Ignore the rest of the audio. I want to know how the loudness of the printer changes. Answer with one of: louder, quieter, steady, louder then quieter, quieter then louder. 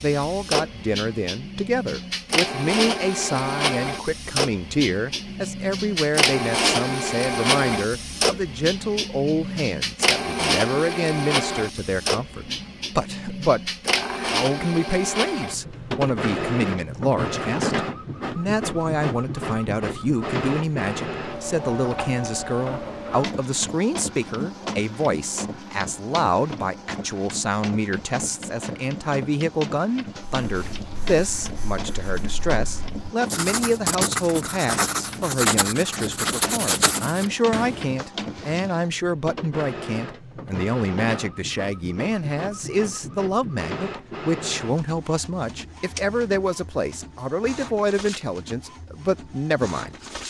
quieter.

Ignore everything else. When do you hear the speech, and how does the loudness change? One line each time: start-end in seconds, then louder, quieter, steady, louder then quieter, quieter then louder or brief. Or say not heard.
0.0-50.2 steady.